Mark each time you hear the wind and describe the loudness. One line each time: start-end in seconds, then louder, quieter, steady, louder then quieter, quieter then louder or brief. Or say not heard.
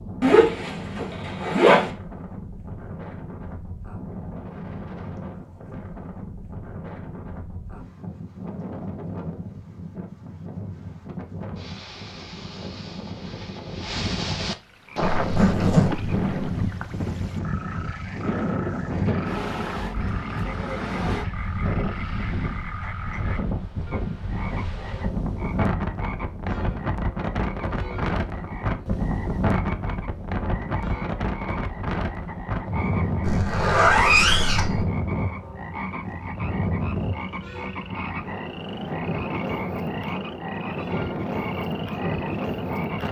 0.0-43.0 louder.